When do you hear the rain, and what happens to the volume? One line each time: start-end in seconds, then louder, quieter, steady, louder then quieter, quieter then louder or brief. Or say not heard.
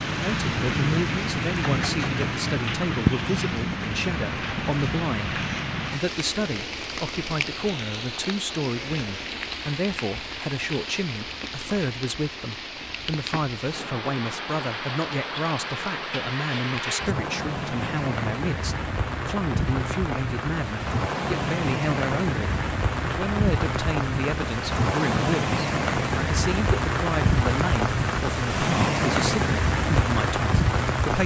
0.0-31.2 quieter then louder.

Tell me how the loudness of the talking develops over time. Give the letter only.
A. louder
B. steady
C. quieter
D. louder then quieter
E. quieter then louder
B.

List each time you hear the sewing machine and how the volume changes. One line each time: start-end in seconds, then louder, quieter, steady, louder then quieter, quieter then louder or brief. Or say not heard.
not heard.